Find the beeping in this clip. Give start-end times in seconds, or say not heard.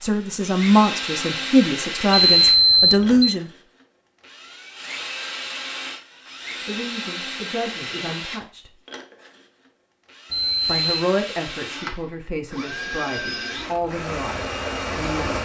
2.1-3.4, 10.3-11.1.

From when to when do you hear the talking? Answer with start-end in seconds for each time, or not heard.
0.0-3.5, 6.7-8.8, 10.7-15.4.